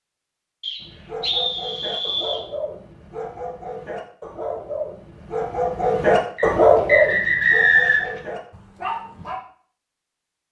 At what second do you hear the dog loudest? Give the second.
7 s.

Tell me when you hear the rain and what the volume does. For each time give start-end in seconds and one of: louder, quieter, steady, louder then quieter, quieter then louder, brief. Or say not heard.
not heard.